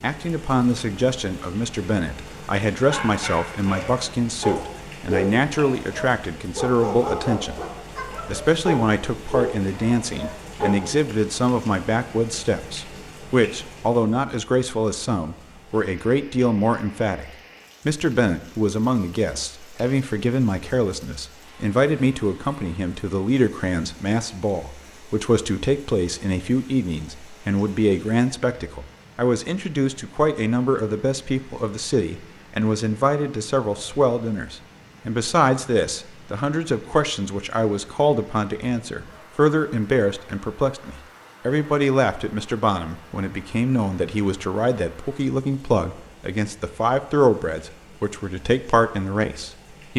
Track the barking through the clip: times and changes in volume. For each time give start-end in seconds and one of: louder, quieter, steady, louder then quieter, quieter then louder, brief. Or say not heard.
2.8-11.0 steady.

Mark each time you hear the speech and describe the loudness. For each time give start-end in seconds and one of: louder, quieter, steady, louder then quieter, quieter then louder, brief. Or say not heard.
0.0-49.9 steady.